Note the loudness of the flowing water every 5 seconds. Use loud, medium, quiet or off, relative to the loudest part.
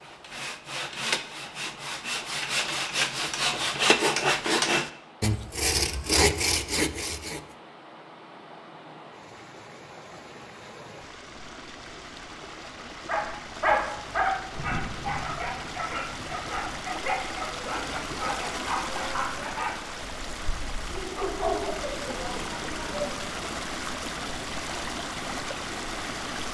quiet, quiet, medium, loud, loud, loud.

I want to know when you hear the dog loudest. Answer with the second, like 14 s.
14 s.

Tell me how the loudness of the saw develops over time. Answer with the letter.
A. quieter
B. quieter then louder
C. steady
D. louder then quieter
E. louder
E.